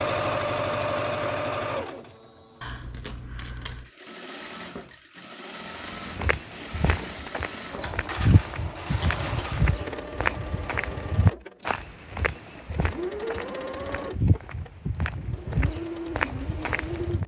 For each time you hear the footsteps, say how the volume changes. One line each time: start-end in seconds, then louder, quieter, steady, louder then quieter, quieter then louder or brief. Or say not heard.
5.9-17.2 steady.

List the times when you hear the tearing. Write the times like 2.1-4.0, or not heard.
not heard.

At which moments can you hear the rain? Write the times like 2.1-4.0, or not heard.
not heard.